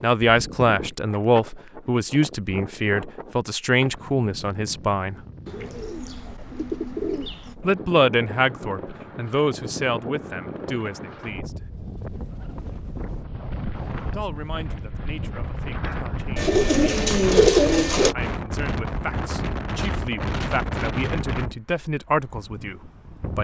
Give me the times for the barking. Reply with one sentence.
The barking can't be heard in this clip.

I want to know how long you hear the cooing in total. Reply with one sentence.
You can hear the cooing for 4 seconds altogether.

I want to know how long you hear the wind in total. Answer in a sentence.
You can hear the wind for 23 seconds altogether.